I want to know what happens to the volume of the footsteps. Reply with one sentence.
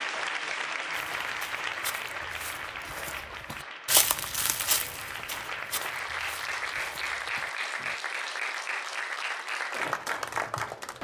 The loudness of the footsteps goes up, then down.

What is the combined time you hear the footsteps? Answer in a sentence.
The footsteps can be heard for 7 seconds in total.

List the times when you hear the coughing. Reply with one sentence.
You can't hear the coughing here.